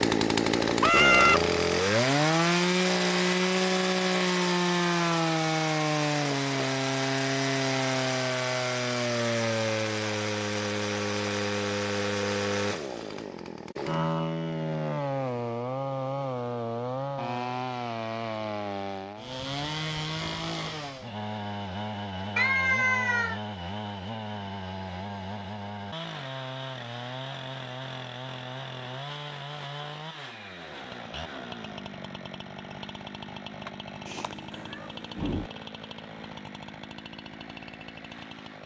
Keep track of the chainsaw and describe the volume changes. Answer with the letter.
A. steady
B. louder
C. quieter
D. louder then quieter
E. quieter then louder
C.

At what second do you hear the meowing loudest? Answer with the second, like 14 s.
1 s.